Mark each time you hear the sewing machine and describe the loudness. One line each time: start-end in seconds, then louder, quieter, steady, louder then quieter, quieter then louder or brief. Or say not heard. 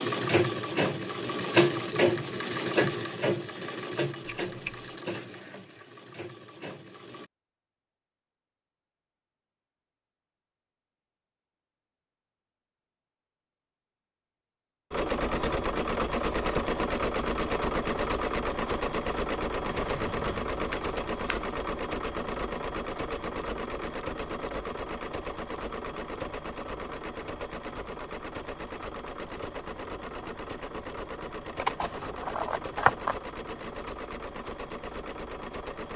0.0-7.3 quieter
14.9-35.9 quieter.